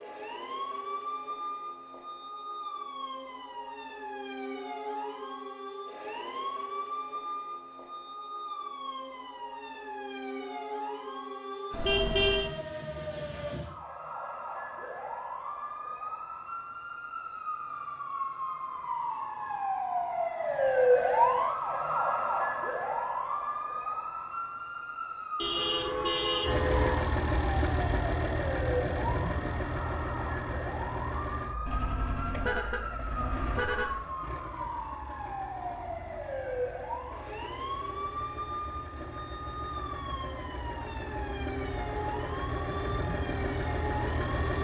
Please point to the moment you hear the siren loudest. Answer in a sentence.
The loudest moment of the siren is at 21 seconds.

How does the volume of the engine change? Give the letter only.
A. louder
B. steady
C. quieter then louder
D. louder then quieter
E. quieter
C.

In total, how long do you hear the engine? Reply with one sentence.
You can hear the engine for 18 seconds altogether.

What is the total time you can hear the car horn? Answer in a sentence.
The car horn can be heard for 5 seconds in total.